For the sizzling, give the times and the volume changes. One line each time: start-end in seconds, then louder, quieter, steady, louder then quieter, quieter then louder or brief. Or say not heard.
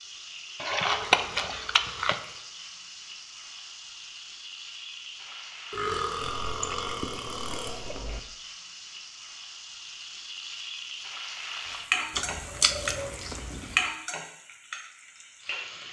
0.0-15.8 louder.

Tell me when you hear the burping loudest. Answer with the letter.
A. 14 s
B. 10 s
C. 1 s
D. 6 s
D.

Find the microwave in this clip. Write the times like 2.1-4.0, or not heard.
not heard.